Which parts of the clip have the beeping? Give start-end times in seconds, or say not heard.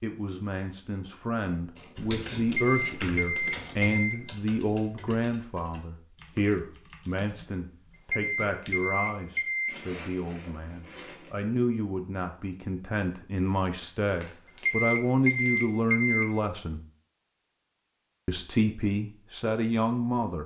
2.5-4.2, 8.1-9.8, 14.7-16.3.